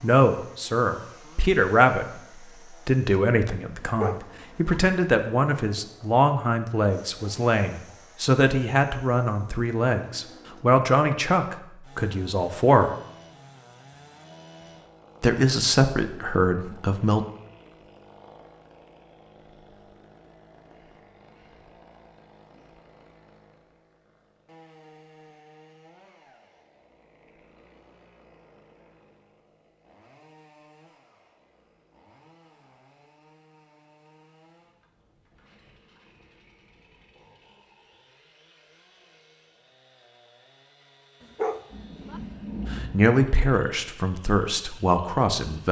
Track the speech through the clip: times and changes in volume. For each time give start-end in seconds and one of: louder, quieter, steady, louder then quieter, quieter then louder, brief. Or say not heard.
0.0-12.9 steady
15.2-17.2 brief
42.7-45.6 brief.